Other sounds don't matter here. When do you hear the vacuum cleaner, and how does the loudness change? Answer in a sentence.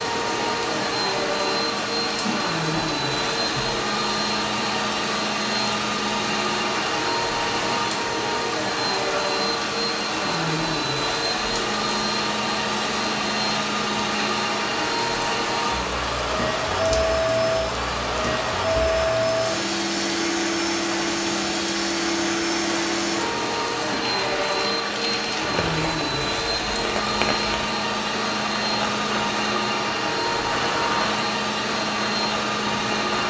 The vacuum cleaner can be heard from 0.0 to 33.2 s, at a steady volume.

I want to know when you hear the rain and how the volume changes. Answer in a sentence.
You can hear the rain from 0.0 to 33.2 s, at a steady volume.